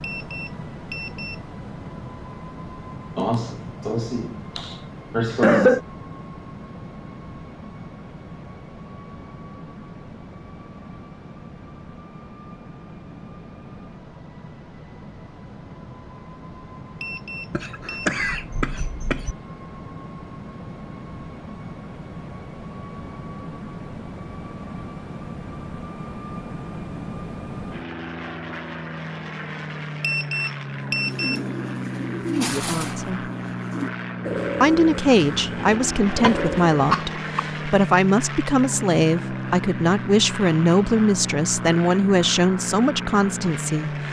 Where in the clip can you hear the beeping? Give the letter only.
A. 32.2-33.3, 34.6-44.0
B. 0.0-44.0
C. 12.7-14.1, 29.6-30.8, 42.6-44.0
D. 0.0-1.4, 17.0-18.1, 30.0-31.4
D.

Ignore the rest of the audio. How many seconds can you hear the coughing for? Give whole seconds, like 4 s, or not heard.
6 s.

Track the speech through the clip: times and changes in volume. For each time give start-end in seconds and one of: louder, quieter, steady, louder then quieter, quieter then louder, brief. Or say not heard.
32.2-33.3 brief
34.6-44.0 steady.